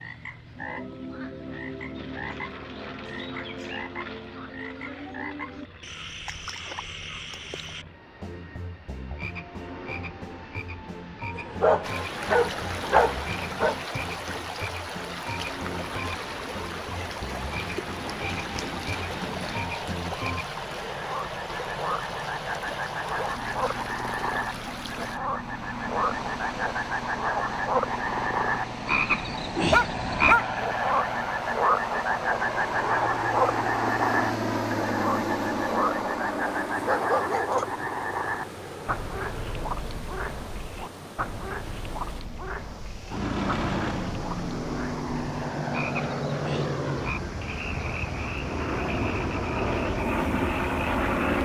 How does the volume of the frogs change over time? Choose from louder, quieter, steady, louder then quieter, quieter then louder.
louder then quieter.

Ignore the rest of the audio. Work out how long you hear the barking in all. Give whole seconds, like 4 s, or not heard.
4 s.